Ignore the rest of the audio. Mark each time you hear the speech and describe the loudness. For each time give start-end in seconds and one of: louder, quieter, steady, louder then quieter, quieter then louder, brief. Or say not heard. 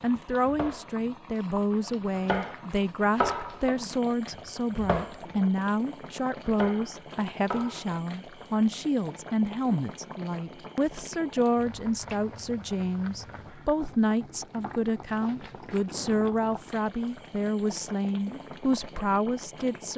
0.0-19.9 steady.